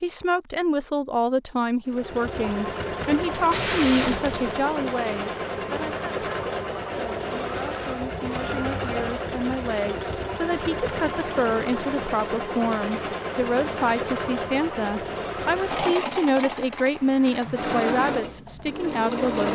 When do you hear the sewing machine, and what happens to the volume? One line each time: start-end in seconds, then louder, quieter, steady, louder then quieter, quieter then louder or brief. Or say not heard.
1.9-19.5 steady.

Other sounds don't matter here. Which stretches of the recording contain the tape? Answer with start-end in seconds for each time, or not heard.
3.5-4.7.